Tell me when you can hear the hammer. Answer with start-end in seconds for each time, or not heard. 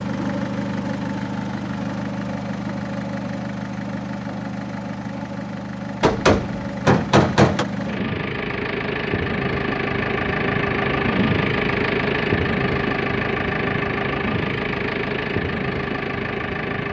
6.0-7.7.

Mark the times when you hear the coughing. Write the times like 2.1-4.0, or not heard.
not heard.